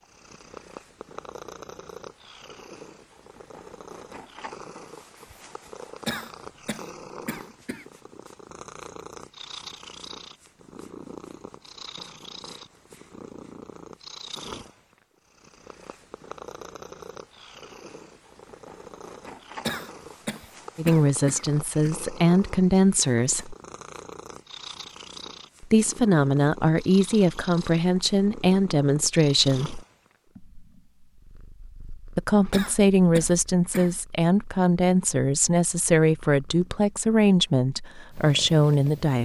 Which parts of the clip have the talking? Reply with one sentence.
The talking can be heard from 20.8 to 23.6 s, from 25.6 to 29.8 s and from 32.1 to 39.2 s.